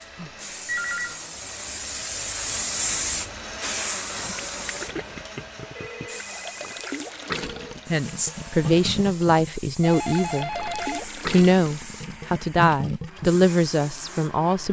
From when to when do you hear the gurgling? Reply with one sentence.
You can hear the gurgling from 4.2 to 13.4 s.